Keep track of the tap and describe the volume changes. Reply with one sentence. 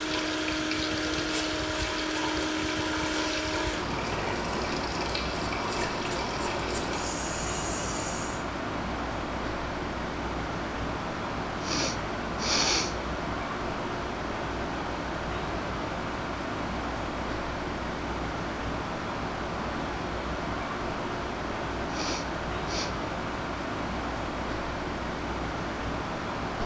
The loudness of the tap stays about the same.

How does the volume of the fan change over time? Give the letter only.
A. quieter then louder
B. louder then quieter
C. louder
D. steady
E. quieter
D.